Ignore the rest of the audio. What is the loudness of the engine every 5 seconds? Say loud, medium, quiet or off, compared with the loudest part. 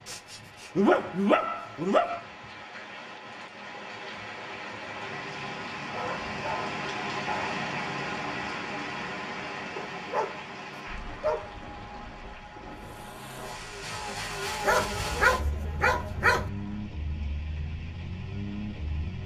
off, off, loud, loud.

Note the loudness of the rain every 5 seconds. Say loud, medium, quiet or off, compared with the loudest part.
medium, loud, medium, quiet.